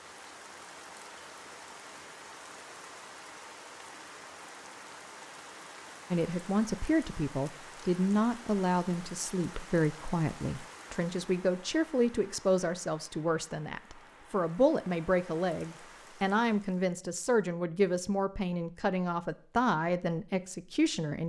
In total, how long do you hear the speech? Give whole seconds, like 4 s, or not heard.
15 s.